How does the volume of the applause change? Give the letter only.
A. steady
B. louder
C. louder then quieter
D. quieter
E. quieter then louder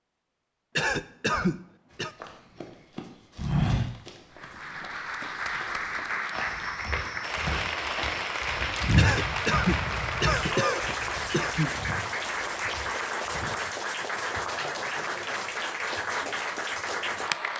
A.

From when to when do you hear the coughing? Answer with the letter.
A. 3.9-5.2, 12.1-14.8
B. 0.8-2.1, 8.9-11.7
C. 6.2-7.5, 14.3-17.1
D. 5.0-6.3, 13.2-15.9
B.